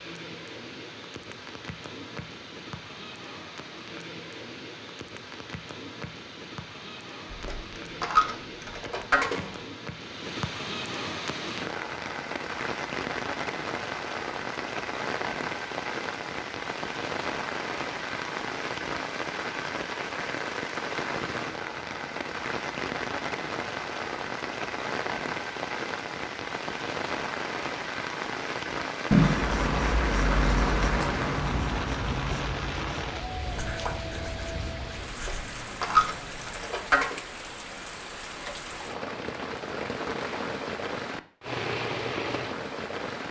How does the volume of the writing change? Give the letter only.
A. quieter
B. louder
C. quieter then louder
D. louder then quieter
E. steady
A.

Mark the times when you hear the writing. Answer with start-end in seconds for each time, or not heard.
29.1-36.5.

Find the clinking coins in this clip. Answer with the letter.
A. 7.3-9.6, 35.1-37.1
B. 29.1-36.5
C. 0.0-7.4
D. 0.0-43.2
A.